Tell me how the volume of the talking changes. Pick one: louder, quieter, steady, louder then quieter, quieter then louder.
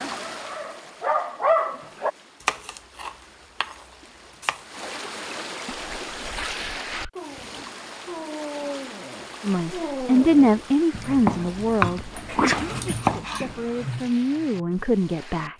quieter then louder.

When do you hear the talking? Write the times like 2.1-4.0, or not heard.
9.4-15.5.